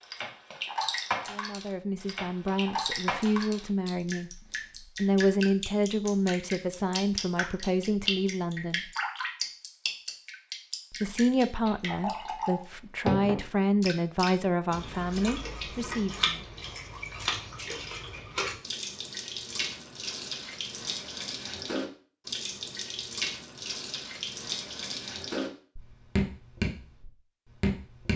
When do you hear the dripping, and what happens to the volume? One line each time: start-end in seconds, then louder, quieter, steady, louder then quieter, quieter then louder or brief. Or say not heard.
0.0-28.1 steady.